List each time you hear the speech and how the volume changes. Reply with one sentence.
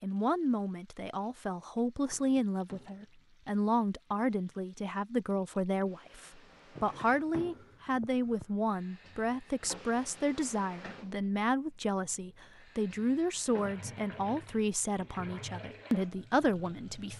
You can hear the speech from 0.0 to 17.1 s, at a steady volume.